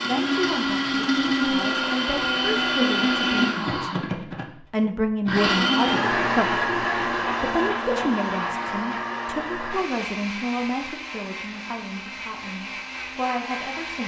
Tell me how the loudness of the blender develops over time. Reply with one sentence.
The volume of the blender goes down.